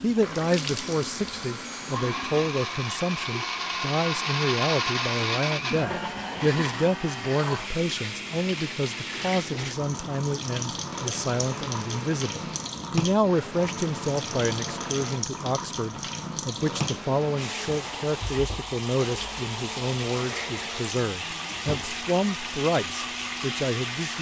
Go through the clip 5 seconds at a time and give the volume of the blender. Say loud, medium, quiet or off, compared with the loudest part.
loud, loud, medium, medium, medium.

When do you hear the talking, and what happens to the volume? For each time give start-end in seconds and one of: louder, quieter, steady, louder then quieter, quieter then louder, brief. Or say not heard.
0.0-24.1 steady.